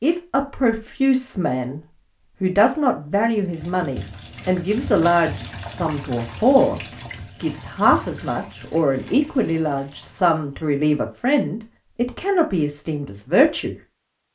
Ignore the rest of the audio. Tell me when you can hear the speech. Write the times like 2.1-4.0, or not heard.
0.0-1.8, 2.4-6.8, 7.4-13.8.